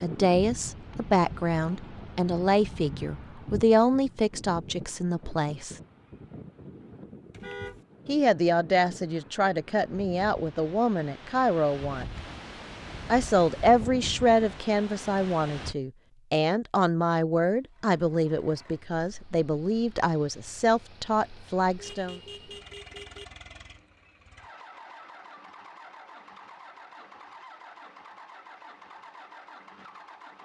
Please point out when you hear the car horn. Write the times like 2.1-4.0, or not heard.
7.3-7.8, 21.8-23.2.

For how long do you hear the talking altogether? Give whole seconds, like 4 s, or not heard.
19 s.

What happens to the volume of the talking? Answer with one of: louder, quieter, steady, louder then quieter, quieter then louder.
steady.